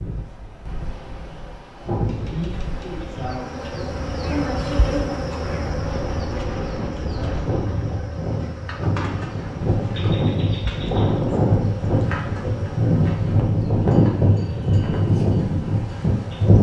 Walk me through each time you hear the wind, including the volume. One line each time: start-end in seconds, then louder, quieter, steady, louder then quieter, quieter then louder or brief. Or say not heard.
0.0-16.5 louder.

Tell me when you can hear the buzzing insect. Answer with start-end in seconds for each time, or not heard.
1.8-16.5.